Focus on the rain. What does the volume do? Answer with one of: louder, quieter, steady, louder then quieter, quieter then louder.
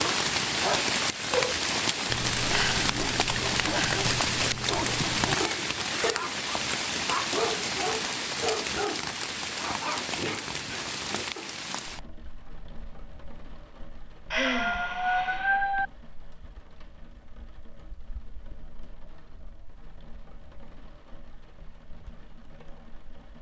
quieter.